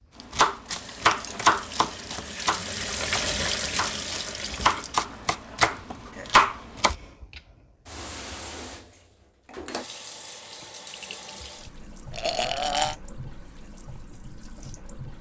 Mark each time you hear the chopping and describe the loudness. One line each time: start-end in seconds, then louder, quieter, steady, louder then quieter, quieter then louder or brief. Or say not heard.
0.2-7.0 quieter then louder.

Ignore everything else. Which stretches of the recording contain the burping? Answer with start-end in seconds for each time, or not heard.
12.1-12.9.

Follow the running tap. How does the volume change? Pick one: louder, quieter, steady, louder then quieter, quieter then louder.
quieter.